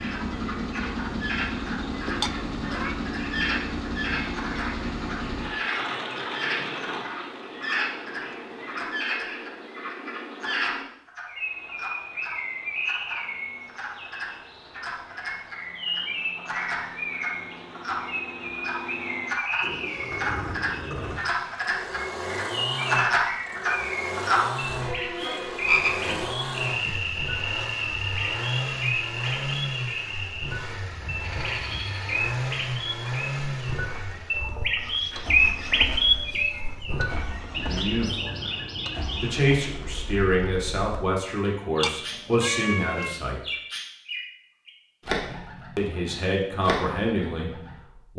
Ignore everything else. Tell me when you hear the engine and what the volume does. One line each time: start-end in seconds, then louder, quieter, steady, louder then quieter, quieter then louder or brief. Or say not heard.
0.0-8.9 quieter
11.3-39.6 louder then quieter.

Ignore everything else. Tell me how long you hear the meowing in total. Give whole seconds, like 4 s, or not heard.
2 s.